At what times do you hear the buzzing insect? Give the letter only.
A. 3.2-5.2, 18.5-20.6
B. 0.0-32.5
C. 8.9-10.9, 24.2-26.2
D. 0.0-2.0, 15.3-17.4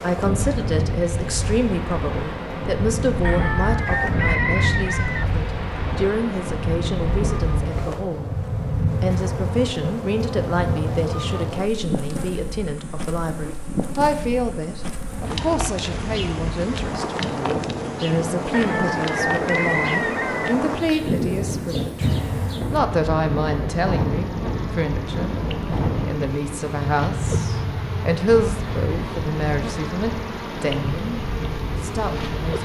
B.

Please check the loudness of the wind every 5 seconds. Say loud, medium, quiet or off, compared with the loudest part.
loud, loud, loud, loud, loud, loud, medium.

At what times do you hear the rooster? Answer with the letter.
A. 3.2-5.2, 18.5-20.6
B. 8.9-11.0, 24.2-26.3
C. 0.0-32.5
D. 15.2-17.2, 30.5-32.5
A.